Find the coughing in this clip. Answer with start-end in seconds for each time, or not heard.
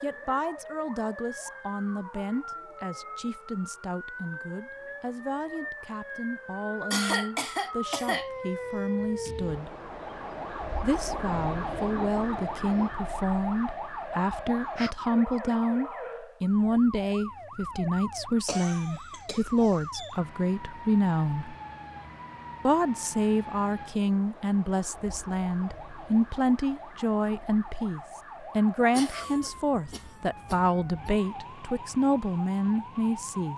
6.9-8.3, 18.4-20.1, 28.9-31.1.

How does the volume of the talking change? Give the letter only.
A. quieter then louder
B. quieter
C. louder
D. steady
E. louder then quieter
C.